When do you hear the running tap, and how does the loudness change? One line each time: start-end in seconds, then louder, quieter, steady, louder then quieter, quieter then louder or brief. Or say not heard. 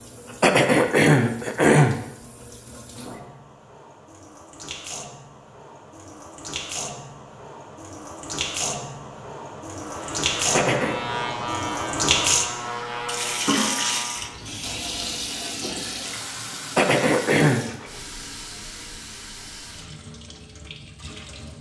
0.0-21.5 louder then quieter.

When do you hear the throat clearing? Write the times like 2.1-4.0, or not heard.
0.4-1.9, 10.5-11.0, 16.8-17.6.